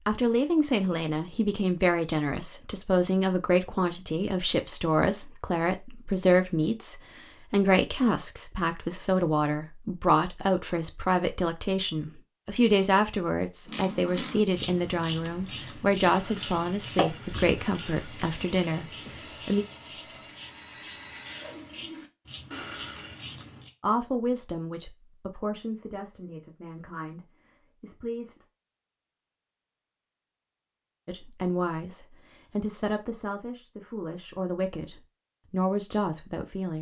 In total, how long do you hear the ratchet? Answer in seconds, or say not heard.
10 s.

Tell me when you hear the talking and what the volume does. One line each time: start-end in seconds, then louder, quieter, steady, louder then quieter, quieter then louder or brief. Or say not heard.
0.1-19.6 steady
23.8-28.4 quieter
31.1-36.7 quieter then louder.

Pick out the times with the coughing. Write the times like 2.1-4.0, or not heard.
not heard.